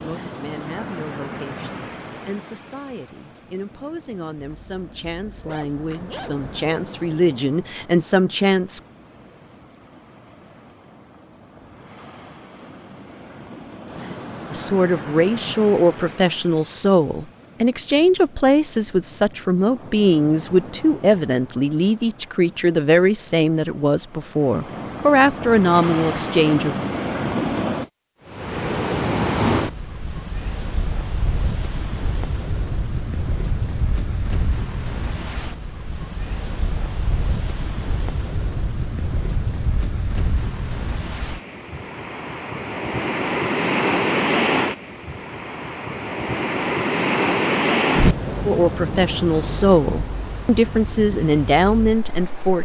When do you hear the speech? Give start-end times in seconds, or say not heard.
0.0-8.8, 14.5-26.8, 48.5-52.6.